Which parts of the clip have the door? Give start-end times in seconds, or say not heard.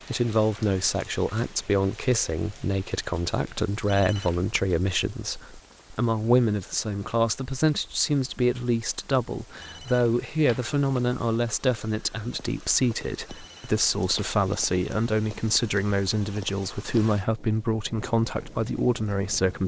not heard.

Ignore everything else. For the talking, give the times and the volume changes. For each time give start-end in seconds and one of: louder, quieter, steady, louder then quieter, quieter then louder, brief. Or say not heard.
0.1-19.6 steady.